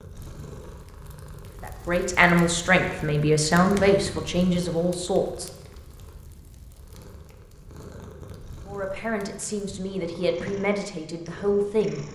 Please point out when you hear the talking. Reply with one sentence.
You can hear the talking from 1.6 to 5.5 s and from 8.7 to 12.1 s.